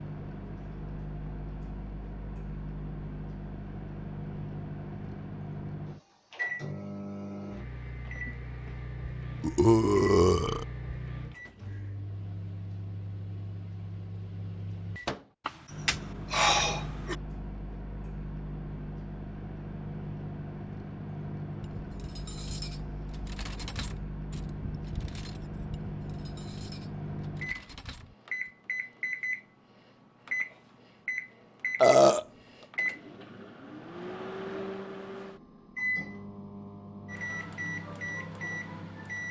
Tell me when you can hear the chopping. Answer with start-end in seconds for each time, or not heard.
not heard.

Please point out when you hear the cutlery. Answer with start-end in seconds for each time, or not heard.
21.6-28.5.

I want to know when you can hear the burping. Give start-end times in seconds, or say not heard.
9.4-10.7, 15.4-17.1, 31.8-32.2.